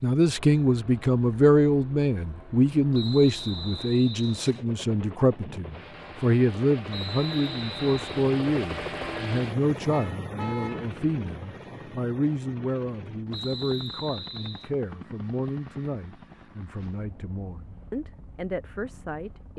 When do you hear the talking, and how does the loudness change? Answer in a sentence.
You can hear the talking from 0.0 to 19.5 s, getting quieter.